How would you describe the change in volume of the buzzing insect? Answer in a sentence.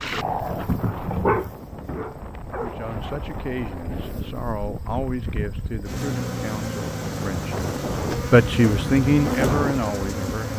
The volume of the buzzing insect goes up.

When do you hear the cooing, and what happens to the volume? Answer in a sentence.
You can't hear the cooing here.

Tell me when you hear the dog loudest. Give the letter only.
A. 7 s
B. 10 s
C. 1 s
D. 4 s
C.